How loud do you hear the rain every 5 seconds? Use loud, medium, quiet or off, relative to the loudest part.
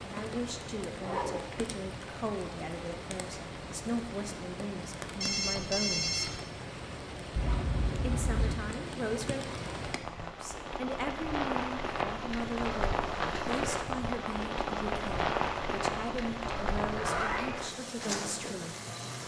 medium, medium, loud, loud.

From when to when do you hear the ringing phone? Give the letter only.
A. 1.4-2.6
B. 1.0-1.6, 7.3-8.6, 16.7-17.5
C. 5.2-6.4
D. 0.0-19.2
C.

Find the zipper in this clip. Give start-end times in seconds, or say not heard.
1.0-1.6, 7.3-8.6, 16.7-17.5.